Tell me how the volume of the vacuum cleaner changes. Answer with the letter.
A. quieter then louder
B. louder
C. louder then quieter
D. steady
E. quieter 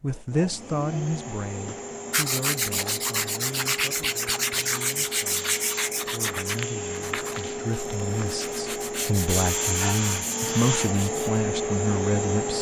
B.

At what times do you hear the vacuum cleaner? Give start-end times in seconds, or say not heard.
0.1-12.5.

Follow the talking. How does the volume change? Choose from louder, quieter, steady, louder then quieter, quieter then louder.
quieter then louder.